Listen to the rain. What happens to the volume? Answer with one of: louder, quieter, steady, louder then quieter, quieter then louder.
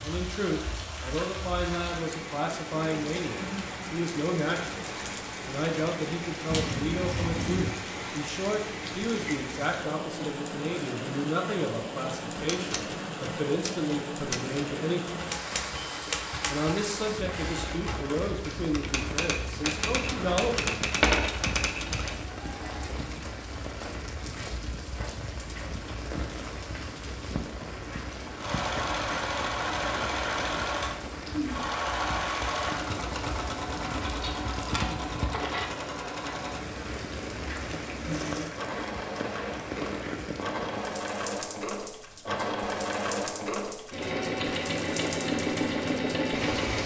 steady.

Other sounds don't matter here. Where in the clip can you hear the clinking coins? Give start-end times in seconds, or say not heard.
6.5-7.7, 21.0-22.1, 34.0-35.6.